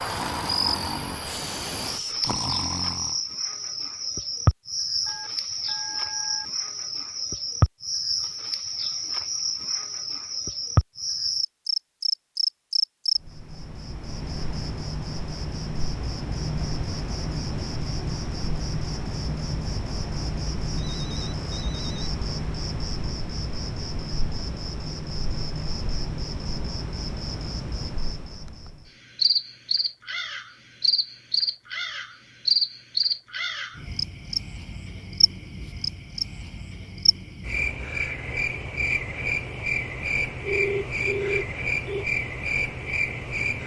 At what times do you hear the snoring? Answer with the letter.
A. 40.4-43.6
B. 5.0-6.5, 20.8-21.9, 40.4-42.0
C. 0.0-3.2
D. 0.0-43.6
C.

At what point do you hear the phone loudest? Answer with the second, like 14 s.
41 s.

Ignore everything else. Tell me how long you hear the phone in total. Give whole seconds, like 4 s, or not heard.
4 s.